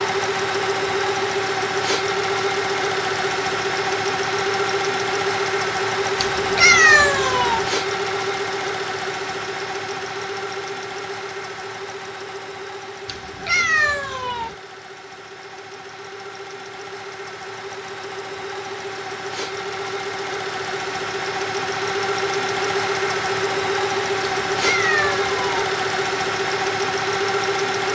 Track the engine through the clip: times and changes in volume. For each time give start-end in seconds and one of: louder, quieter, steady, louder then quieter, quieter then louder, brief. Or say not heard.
0.0-27.8 quieter then louder.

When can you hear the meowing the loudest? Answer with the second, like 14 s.
7 s.